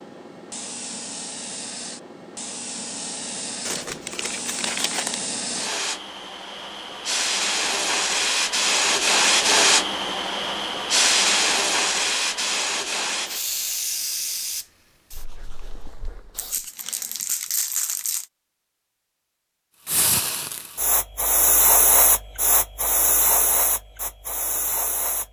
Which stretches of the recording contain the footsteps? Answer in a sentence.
You can't hear the footsteps here.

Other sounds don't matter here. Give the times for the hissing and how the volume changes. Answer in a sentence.
The hissing can be heard from 0.0 to 16.7 s, getting louder then quieter; and from 19.9 to 25.2 s, getting louder then quieter.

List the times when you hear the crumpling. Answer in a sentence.
You can hear the crumpling from 3.6 to 5.2 s and from 16.4 to 18.2 s.